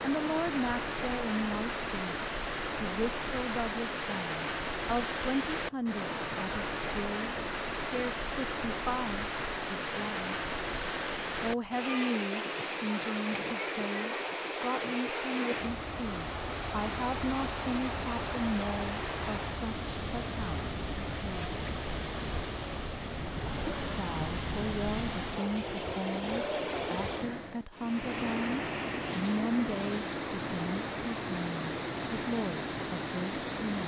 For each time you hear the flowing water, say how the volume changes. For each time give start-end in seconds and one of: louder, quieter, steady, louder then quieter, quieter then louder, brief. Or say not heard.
0.0-33.8 steady.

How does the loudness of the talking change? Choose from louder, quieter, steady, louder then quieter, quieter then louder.
steady.